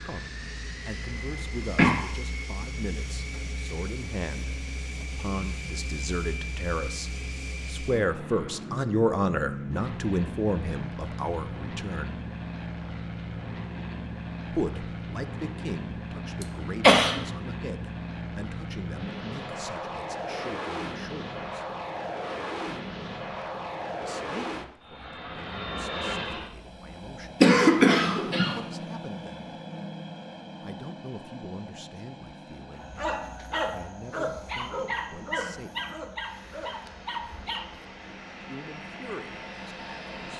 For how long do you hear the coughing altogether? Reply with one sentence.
You can hear the coughing for 3 seconds altogether.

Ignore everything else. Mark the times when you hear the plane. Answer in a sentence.
The plane can be heard from 0.0 to 40.3 s.